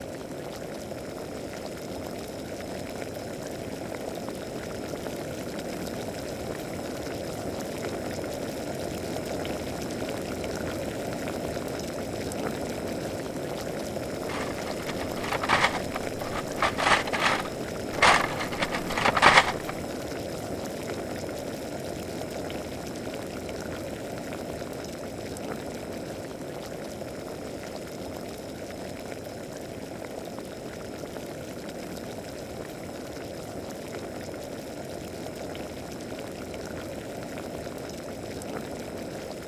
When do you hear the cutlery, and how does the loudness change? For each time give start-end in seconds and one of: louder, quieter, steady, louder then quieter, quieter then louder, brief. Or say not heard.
14.2-19.7 louder.